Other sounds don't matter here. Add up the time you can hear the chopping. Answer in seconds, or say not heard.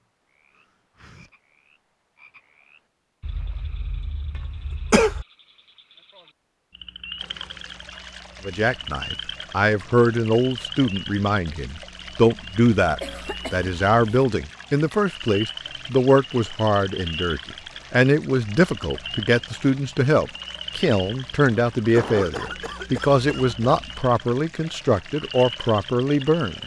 not heard.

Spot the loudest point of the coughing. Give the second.
5 s.